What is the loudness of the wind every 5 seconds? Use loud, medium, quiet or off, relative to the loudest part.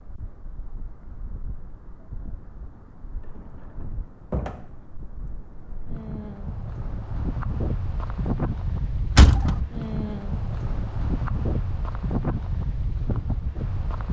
quiet, loud, loud.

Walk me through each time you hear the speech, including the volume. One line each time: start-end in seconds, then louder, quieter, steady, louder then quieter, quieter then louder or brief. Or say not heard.
not heard.